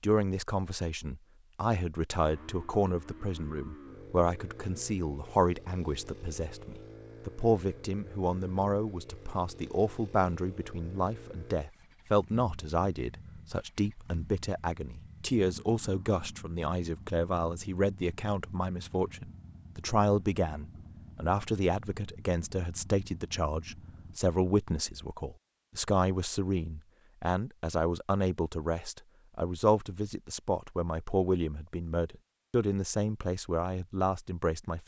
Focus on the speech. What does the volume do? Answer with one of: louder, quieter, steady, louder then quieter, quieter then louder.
steady.